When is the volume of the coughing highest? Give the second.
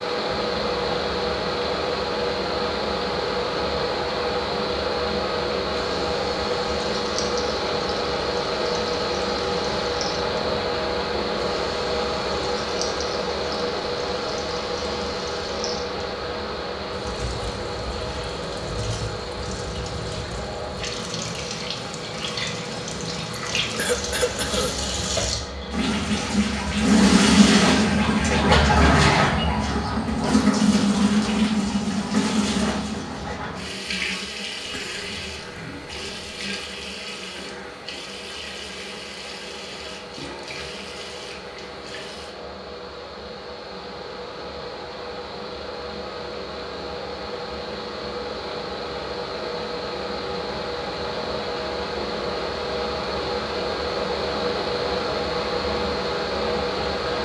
24 s.